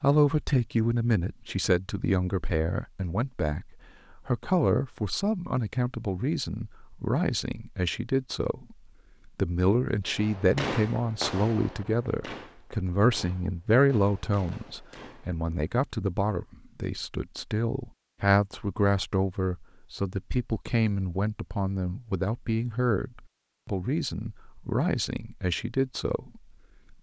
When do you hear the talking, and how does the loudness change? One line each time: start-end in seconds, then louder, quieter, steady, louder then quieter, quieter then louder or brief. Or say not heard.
0.0-26.9 steady.